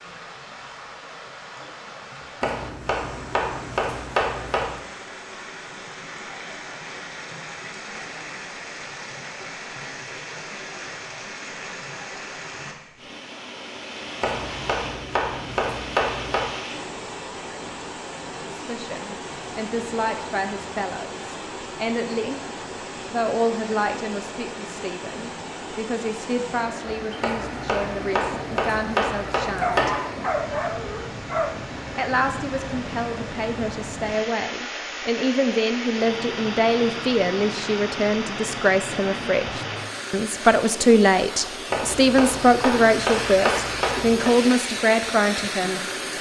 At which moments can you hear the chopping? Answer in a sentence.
You can hear the chopping from 2.4 to 4.8 s, from 14.2 to 16.5 s, from 27.2 to 30.0 s and from 41.7 to 44.3 s.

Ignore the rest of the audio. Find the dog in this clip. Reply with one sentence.
The dog can be heard from 29.6 to 31.6 s.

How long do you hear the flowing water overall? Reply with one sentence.
You can hear the flowing water for 46 seconds altogether.